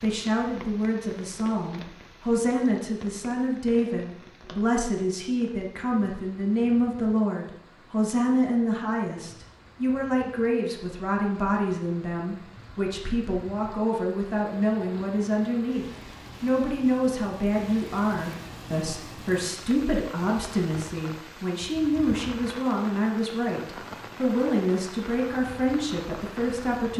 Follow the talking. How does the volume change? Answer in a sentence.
The loudness of the talking stays about the same.